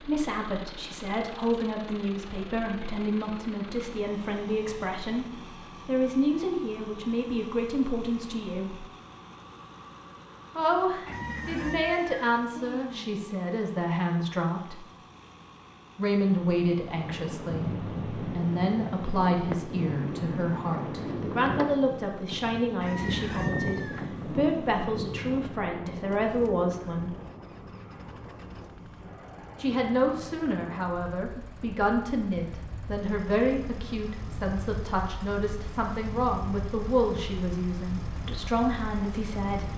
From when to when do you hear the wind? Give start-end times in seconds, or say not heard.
16.3-39.7.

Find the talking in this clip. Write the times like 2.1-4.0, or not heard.
0.0-8.8, 10.6-14.8, 15.9-27.1, 29.6-39.7.